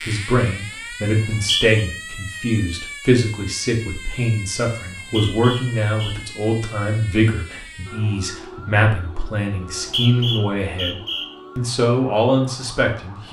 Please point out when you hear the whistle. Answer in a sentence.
You can hear the whistle from 1.1 to 1.9 s, from 4.9 to 6.2 s and from 9.7 to 11.2 s.